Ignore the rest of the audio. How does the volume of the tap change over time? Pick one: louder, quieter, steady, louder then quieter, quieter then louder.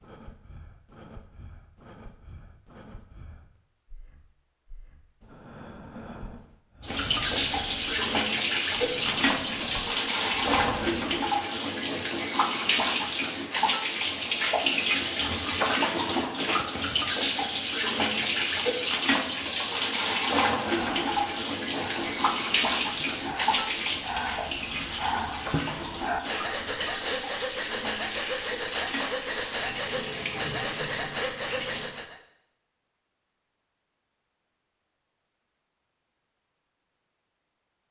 quieter.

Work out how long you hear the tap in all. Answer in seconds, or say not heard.
25 s.